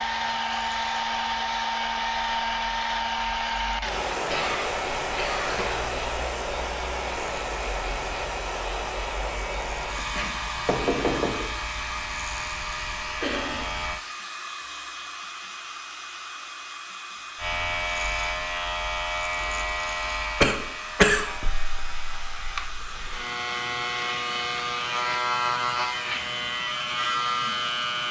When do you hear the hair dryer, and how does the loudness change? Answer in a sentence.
You can hear the hair dryer from 0.0 to 28.0 s, getting quieter.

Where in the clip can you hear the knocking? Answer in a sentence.
You can hear the knocking from 9.9 to 11.4 s.